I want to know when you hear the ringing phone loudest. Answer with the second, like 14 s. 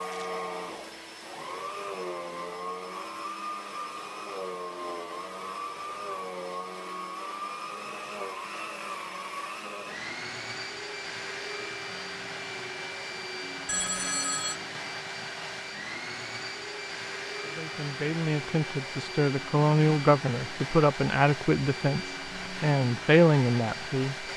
14 s.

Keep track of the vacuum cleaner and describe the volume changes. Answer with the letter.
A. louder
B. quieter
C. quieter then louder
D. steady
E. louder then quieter
D.